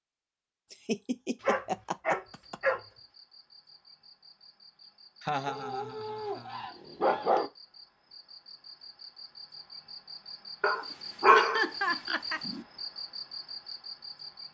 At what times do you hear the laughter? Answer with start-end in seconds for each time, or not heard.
0.7-2.5, 5.2-6.7, 10.8-12.4.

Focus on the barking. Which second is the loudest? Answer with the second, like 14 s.
11 s.